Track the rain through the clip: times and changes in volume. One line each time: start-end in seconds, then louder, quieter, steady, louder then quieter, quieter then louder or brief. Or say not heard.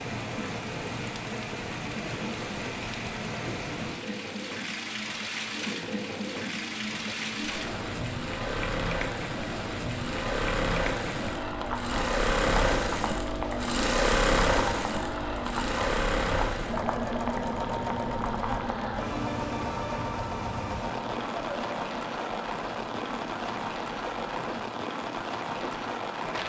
0.0-26.4 steady.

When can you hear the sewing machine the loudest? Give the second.
14 s.